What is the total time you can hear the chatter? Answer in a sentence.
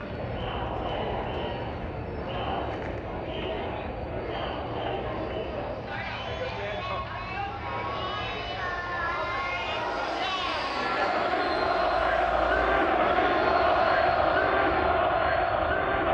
The chatter can be heard for 16 seconds in total.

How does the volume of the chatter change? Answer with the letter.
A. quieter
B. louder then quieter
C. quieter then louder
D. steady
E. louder
E.